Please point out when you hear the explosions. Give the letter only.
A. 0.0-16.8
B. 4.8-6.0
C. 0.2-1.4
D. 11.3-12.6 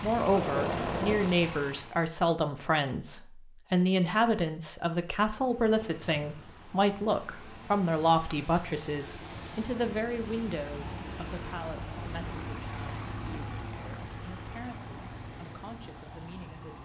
C.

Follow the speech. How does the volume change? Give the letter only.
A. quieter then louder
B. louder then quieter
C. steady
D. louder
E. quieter
E.